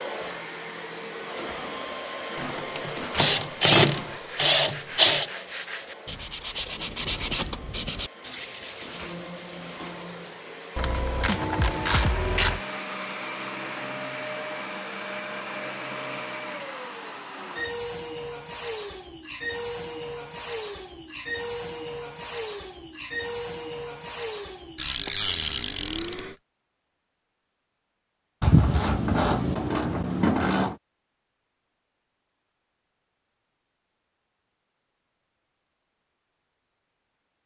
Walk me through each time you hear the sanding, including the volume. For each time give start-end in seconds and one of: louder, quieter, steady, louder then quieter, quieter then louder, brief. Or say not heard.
4.0-10.4 louder then quieter.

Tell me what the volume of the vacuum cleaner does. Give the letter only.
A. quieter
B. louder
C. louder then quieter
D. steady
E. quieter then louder
E.